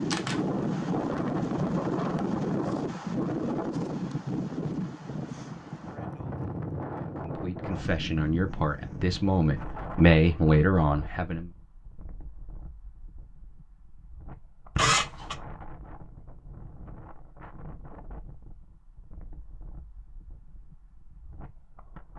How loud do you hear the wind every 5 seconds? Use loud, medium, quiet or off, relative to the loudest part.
loud, medium, quiet, quiet, quiet.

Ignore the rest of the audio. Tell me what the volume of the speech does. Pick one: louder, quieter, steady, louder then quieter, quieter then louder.
louder.